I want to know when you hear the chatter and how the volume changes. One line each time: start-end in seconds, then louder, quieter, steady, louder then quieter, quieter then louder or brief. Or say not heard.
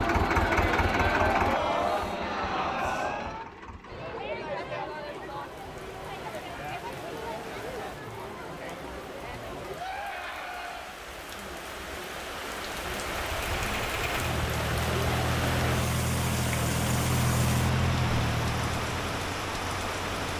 0.0-11.0 quieter.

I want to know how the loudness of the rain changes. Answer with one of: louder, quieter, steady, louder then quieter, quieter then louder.
louder.